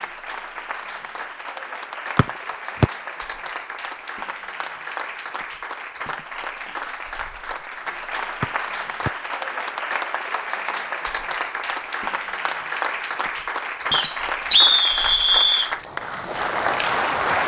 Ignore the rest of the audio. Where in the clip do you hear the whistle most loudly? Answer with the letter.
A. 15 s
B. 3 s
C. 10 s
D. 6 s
A.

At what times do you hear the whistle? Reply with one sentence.
The whistle can be heard from 2.1 to 2.9 s and from 13.9 to 15.7 s.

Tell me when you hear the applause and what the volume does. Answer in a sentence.
You can hear the applause from 0.0 to 17.4 s, getting louder.